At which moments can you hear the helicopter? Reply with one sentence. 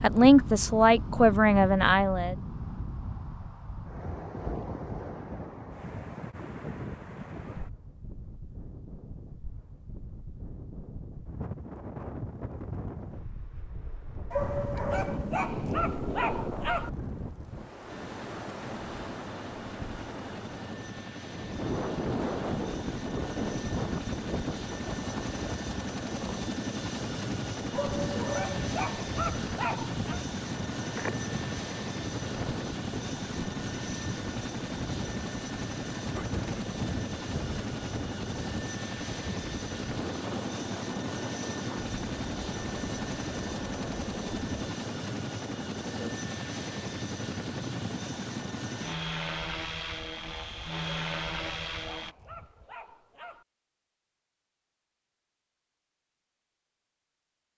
The helicopter can be heard from 17.9 to 52.1 s.